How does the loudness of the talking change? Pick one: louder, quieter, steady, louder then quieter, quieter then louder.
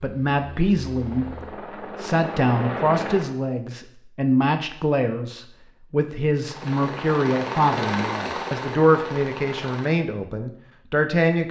steady.